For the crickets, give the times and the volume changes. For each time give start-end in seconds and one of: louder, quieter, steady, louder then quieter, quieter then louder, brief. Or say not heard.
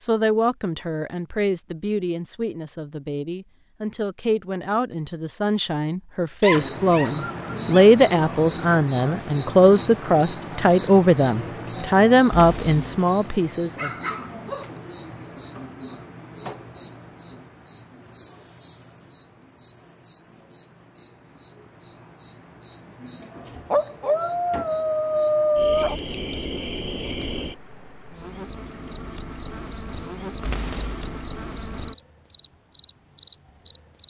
6.5-34.0 quieter then louder.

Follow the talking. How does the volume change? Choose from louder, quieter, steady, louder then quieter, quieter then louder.
louder.